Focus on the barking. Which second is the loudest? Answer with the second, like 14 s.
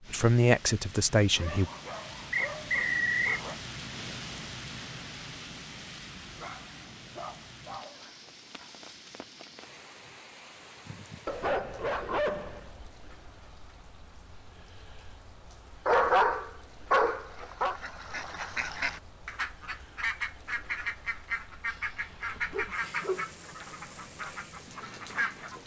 16 s.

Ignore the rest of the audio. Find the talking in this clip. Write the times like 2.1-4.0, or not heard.
0.1-1.7.